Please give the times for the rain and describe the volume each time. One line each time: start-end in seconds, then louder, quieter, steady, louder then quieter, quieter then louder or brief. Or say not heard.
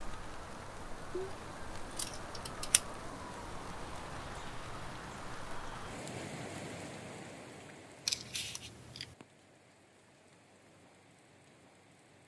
0.0-12.2 quieter.